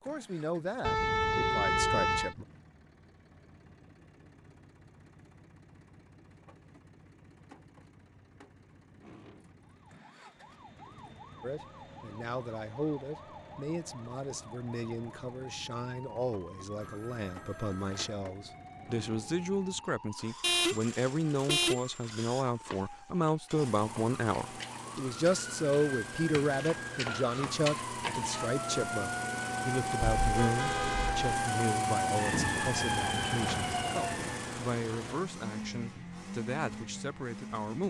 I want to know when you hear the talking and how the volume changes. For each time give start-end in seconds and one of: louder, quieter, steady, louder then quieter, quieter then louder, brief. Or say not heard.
0.0-2.5 brief
11.4-37.8 louder then quieter.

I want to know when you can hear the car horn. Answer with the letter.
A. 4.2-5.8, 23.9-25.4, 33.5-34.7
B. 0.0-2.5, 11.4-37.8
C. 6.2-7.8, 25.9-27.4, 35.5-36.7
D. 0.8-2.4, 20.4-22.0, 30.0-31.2
D.